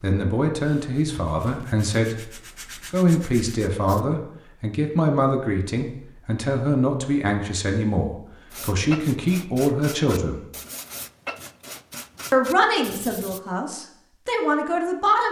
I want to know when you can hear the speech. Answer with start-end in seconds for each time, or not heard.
0.0-2.3, 2.9-10.4, 12.3-15.2.